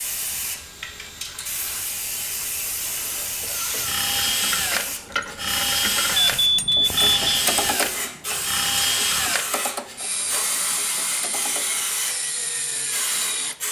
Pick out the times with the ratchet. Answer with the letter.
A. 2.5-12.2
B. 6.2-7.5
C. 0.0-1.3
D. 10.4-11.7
A.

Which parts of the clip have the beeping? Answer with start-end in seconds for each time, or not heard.
6.2-7.5.